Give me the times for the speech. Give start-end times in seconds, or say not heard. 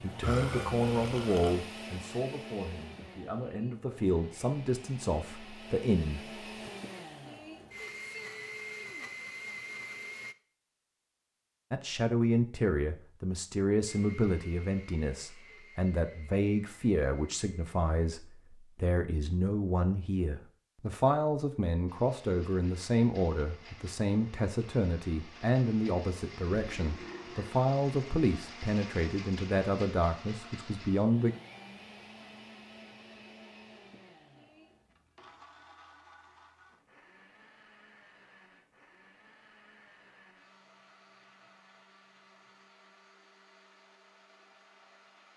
0.0-6.7, 11.7-31.4.